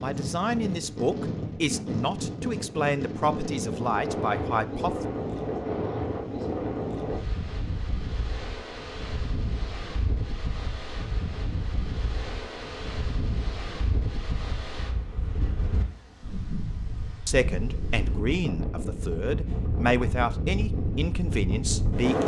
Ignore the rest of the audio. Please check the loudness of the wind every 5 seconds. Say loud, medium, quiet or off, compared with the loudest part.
loud, loud, medium, medium, loud.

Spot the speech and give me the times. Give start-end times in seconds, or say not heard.
0.0-5.0, 17.2-22.2.